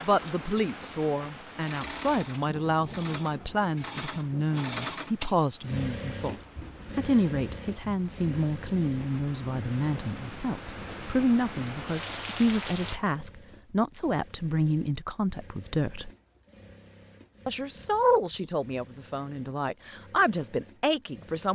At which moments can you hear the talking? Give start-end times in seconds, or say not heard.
0.0-6.3, 7.0-16.1, 17.4-21.5.